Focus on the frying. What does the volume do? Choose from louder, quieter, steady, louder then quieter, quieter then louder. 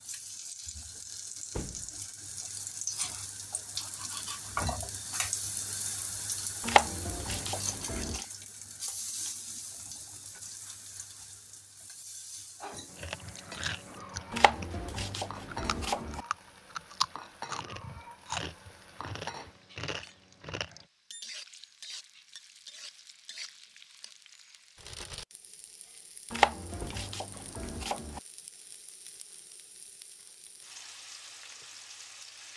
quieter.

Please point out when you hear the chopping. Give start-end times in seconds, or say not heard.
6.6-8.2, 14.3-16.2, 26.3-28.2.